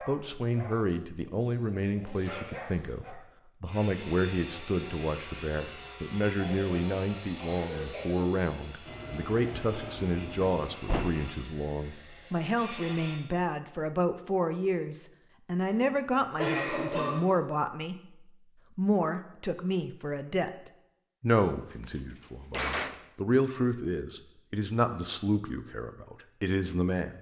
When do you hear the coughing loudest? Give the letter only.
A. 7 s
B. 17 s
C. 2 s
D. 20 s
B.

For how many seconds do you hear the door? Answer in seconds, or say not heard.
2 s.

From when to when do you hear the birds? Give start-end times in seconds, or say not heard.
not heard.